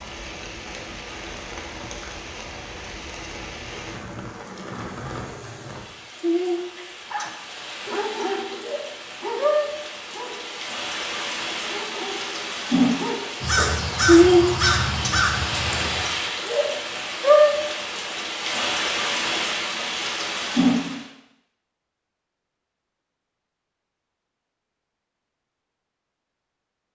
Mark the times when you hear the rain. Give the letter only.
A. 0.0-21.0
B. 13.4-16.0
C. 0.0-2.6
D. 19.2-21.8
A.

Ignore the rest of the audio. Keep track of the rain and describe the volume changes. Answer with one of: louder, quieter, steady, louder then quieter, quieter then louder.
louder.